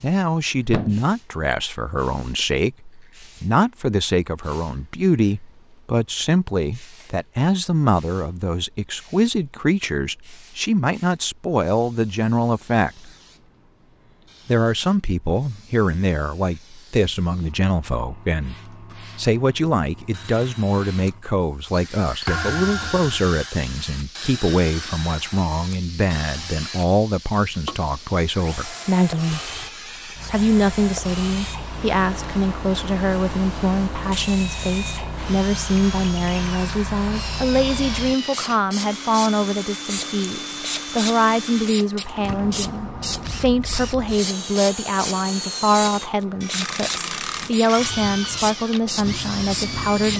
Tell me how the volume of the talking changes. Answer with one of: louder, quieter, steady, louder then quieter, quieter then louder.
steady.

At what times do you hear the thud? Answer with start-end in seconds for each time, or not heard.
0.7-1.1, 22.2-23.2, 42.0-42.6.